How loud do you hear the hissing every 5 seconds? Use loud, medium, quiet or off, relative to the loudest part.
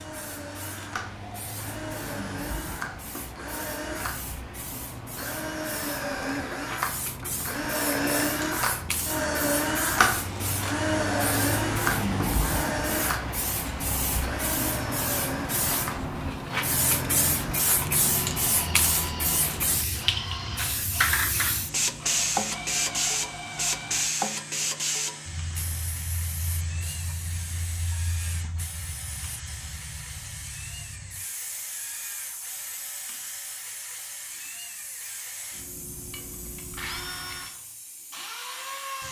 quiet, medium, loud, loud, loud, quiet, quiet, quiet.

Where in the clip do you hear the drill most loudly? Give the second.
10 s.